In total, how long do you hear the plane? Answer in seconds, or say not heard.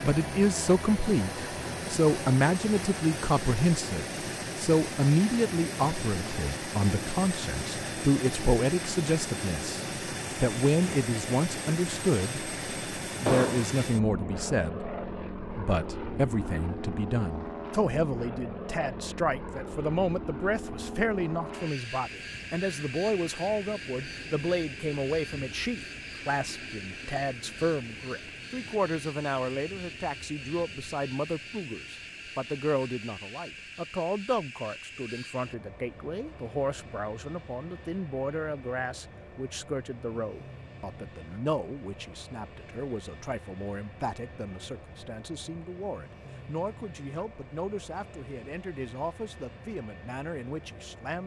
51 s.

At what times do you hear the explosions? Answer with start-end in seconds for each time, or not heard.
13.2-13.8.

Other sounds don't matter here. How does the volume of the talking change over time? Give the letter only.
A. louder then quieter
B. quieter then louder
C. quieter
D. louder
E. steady
C.